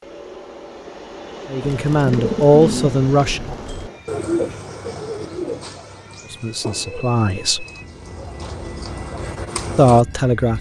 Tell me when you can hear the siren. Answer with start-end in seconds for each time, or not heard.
not heard.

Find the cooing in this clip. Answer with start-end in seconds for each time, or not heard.
1.6-10.1.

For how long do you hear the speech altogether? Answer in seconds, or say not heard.
4 s.